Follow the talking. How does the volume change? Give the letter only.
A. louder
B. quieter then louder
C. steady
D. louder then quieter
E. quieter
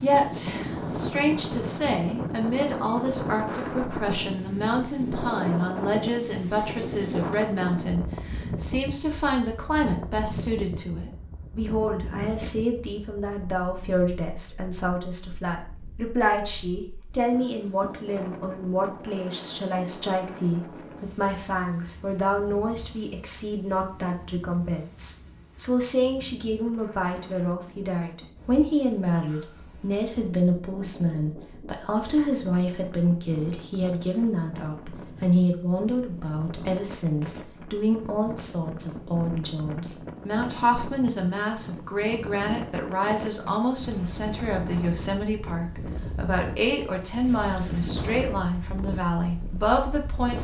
C.